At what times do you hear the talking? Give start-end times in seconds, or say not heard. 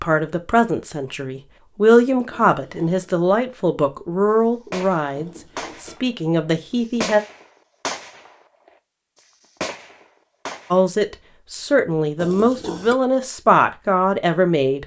0.0-7.2, 10.7-14.8.